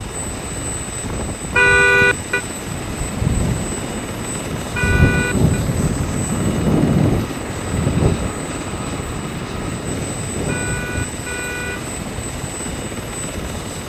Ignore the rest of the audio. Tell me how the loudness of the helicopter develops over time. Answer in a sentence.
The volume of the helicopter stays about the same.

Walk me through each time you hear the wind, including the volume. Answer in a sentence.
You can hear the wind from 0.0 to 13.8 s, getting louder then quieter.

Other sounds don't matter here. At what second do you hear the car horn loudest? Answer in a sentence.
The volume of the car horn peaks at 2 seconds.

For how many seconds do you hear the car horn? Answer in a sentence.
The car horn can be heard for 3 seconds in total.